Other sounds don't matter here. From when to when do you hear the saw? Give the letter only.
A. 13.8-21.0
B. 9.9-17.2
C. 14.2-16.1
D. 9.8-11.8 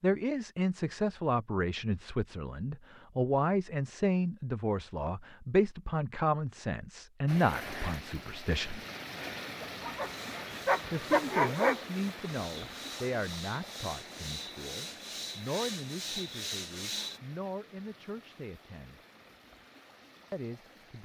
B.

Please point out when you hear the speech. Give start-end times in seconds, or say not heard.
0.0-8.8, 10.9-19.0, 20.3-21.0.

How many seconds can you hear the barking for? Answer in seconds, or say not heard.
2 s.